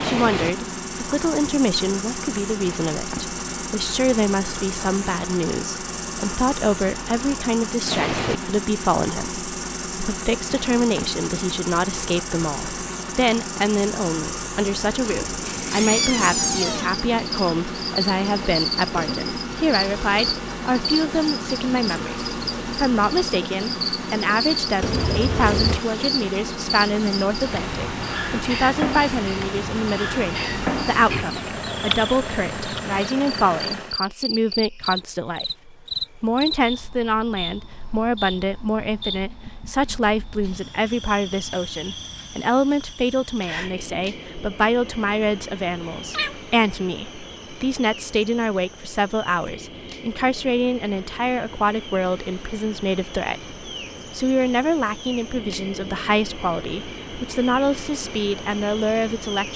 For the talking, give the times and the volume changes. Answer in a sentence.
You can hear the talking from 0.0 to 59.5 s, at a steady volume.